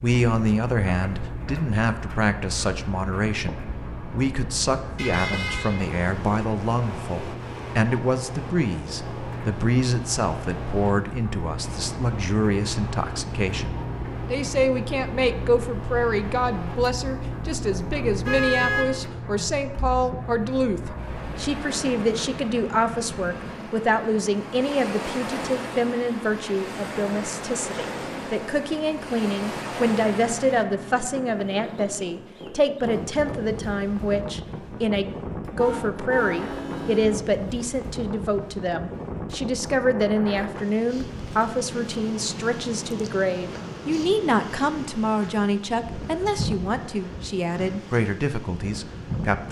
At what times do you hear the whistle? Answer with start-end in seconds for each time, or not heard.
not heard.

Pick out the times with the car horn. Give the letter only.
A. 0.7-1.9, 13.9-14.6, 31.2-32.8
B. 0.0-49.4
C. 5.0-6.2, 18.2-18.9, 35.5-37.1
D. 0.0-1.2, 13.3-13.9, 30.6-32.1
C.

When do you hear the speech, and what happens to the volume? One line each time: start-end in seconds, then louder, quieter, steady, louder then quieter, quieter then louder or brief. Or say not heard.
0.0-49.4 steady.